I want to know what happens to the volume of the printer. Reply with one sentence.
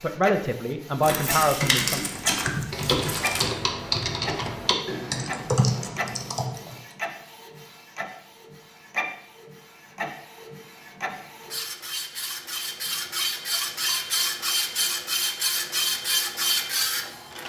The volume of the printer goes up.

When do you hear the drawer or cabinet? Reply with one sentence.
The drawer or cabinet can't be heard in this clip.